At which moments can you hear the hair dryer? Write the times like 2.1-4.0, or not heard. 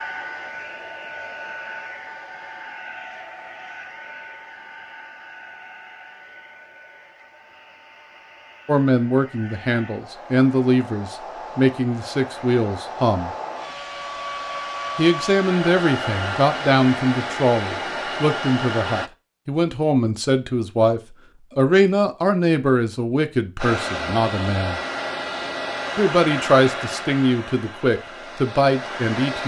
0.0-19.1, 23.6-29.4.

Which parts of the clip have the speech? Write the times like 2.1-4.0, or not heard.
8.7-13.3, 14.9-24.8, 25.9-29.4.